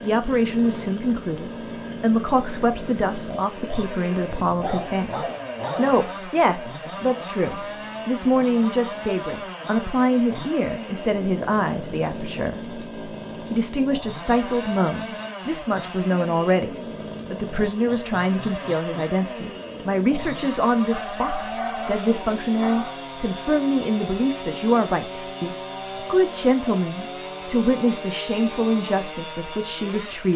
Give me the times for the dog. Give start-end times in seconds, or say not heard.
4.4-6.0, 20.9-22.9.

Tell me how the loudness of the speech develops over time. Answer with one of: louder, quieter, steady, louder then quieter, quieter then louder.
steady.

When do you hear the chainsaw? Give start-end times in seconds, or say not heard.
0.0-30.3.